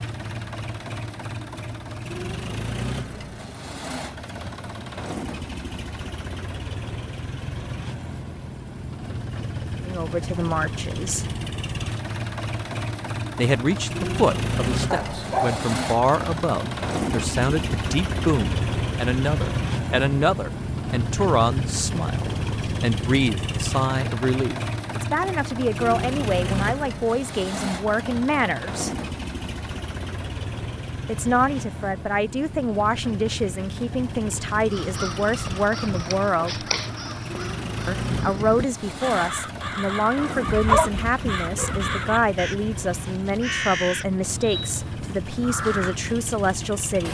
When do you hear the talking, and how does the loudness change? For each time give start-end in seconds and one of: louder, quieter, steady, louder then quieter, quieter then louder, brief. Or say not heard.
9.8-11.2 brief
13.3-28.9 steady
31.1-36.6 steady
37.9-47.0 steady.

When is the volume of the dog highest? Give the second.
41 s.